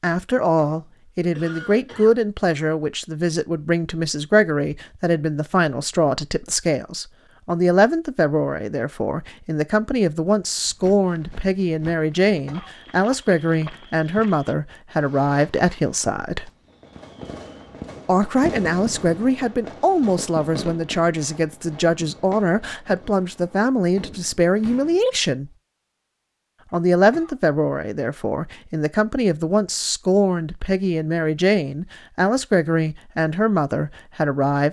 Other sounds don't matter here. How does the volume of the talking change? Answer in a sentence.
The volume of the talking stays about the same.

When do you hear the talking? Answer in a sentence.
You can hear the talking from 0.0 to 16.5 s, from 18.1 to 25.5 s and from 26.7 to 34.6 s.